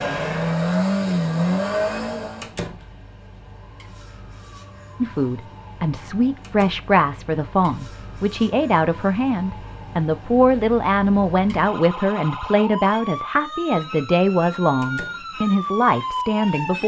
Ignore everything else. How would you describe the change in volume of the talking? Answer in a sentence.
The volume of the talking stays about the same.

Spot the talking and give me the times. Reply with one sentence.
The talking can be heard from 5.0 to 16.8 s.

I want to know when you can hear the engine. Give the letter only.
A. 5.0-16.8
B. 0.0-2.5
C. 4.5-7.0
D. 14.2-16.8
B.